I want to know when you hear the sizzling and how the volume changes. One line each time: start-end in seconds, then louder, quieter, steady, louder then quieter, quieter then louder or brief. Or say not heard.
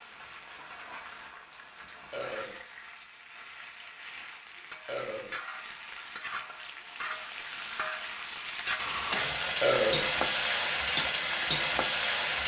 0.0-12.4 louder.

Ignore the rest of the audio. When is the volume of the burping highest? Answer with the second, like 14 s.
10 s.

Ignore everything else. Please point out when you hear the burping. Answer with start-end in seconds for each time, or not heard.
2.1-2.6, 4.8-5.4, 9.6-10.1.